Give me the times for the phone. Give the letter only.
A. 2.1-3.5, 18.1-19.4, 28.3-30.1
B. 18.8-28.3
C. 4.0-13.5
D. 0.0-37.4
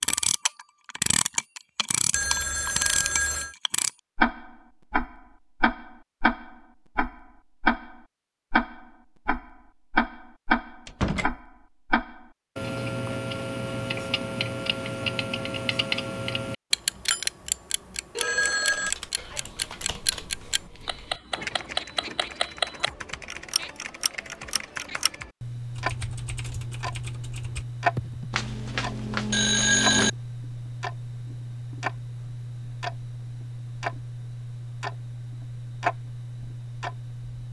A.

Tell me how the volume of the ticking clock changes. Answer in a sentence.
The volume of the ticking clock goes down.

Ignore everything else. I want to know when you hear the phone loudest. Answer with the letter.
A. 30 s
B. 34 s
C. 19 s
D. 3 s
A.